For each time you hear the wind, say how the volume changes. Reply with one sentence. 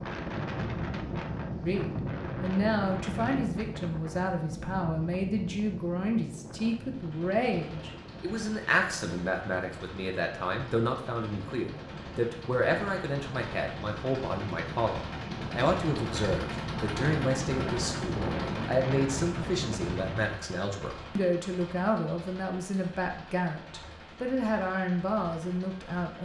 You can hear the wind from 0.0 to 20.4 s, getting quieter then louder.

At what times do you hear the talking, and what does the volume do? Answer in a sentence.
The talking can be heard from 1.6 to 26.1 s, at a steady volume.